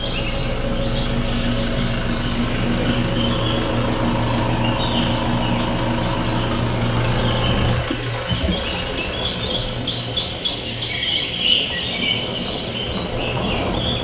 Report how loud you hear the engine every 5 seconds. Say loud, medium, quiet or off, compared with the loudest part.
loud, loud, medium.